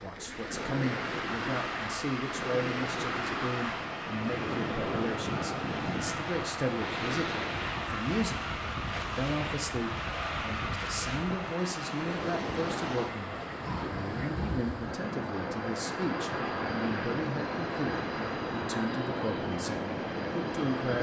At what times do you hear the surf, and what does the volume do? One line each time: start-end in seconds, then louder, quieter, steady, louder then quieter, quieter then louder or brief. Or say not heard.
0.0-20.9 steady.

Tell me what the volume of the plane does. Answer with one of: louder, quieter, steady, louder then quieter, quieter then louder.
steady.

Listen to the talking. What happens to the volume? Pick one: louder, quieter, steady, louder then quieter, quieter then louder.
steady.